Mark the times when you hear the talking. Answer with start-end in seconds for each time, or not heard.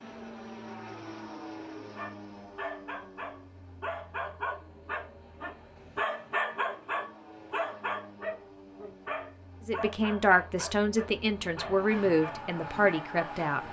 9.7-13.6.